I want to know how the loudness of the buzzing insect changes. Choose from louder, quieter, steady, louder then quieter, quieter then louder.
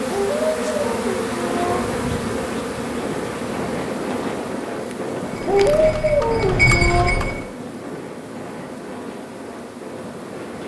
quieter.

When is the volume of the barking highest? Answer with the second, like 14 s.
6 s.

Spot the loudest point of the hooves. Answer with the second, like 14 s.
7 s.